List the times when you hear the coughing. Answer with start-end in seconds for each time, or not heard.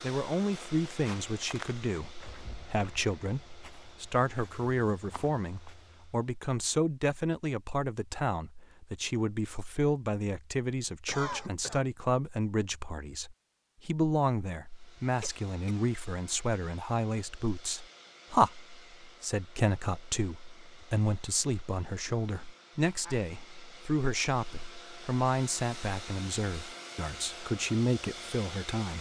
11.1-11.8, 15.2-15.8.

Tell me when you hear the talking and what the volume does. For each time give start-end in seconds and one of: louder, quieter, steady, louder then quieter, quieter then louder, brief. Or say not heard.
0.0-28.9 steady.